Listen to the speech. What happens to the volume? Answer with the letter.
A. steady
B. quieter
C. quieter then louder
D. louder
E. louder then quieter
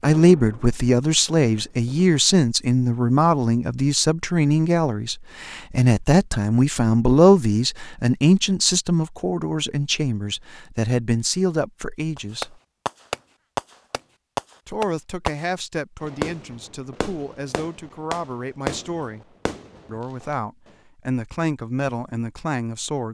B.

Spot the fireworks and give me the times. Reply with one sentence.
The fireworks can be heard from 0.0 to 2.1 s and from 12.2 to 20.2 s.